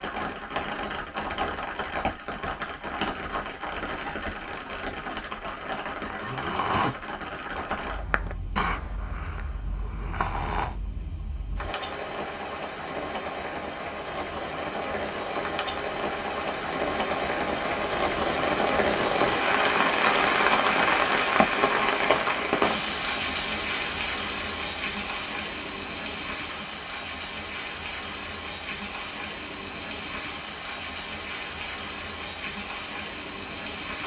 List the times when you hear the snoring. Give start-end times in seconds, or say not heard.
4.9-10.8.